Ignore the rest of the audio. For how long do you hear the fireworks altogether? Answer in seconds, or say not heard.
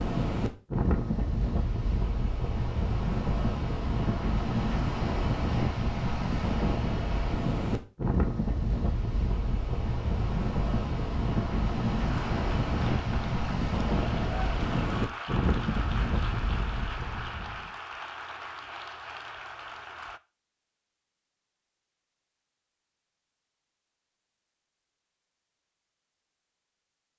not heard.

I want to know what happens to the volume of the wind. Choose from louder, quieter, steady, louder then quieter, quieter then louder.
steady.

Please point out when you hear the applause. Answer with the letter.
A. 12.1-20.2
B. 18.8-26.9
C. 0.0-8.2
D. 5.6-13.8
A.